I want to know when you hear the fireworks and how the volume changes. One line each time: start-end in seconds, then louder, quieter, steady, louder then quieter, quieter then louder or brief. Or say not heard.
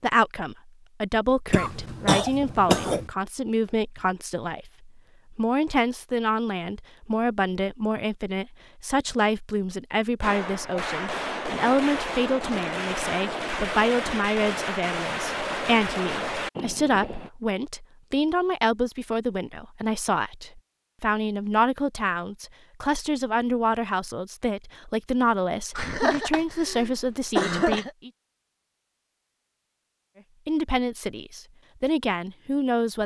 10.2-17.3 steady.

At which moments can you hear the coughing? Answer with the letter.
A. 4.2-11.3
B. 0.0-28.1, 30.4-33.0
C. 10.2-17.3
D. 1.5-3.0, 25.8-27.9
D.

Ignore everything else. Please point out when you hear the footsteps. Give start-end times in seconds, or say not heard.
not heard.